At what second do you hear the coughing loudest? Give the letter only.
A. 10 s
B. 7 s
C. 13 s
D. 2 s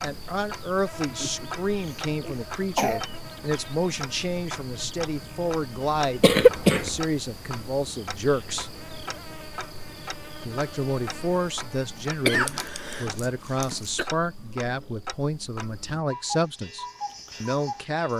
B.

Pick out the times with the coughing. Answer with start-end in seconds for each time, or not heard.
1.1-3.0, 6.2-7.0, 12.2-14.1.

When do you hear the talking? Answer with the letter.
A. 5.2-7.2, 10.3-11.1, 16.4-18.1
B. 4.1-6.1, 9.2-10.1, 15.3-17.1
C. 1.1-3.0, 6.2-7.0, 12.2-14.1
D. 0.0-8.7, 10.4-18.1
D.